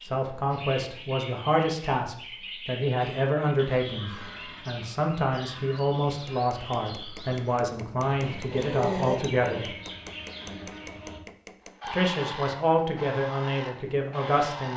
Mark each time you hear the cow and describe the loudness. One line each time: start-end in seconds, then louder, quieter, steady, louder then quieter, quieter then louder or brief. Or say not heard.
not heard.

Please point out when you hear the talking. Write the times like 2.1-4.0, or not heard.
0.0-9.8, 11.9-14.7.